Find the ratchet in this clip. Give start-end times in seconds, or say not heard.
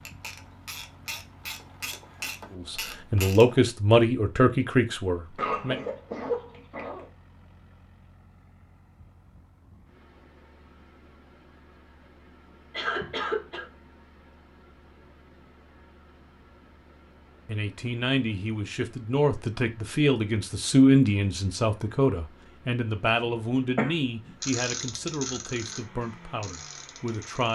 0.0-3.6, 24.4-27.5.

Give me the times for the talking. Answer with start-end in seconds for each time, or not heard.
2.5-5.8, 17.4-27.5.